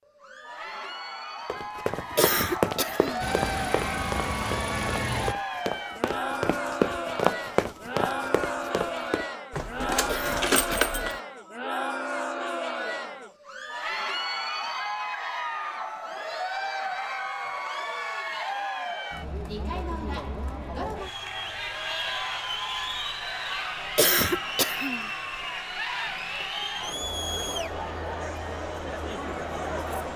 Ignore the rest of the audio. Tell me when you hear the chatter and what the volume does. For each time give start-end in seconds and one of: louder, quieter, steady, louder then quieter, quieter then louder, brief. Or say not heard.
0.1-30.1 steady.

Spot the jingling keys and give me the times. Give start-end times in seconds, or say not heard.
9.5-11.2.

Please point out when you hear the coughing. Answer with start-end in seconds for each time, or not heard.
2.1-3.2, 10.1-10.8, 23.9-25.1.